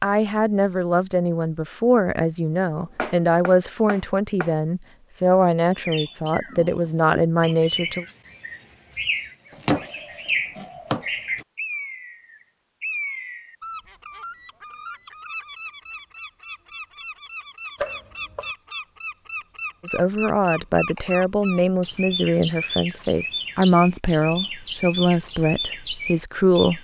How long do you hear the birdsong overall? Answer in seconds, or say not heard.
21 s.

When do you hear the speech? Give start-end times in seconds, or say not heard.
0.0-8.1, 19.9-26.7.